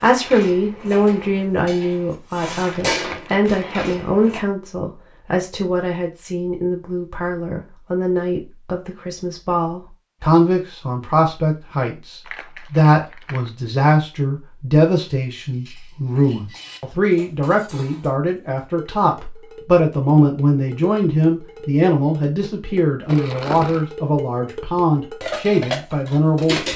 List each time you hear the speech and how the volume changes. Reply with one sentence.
You can hear the speech from 0.0 to 26.7 s, at a steady volume.